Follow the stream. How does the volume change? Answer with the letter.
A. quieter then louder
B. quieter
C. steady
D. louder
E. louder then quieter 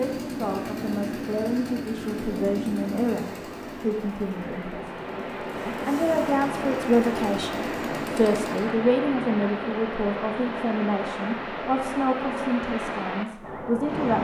D.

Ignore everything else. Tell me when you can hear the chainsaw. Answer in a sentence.
The chainsaw can be heard from 0.0 to 8.8 s.